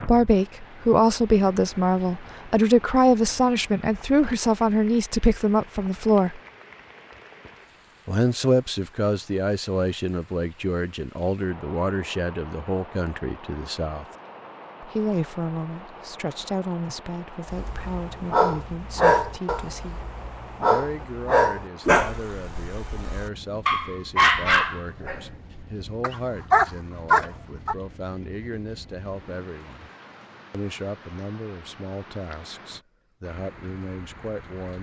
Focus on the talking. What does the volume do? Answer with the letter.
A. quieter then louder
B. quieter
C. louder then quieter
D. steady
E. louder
B.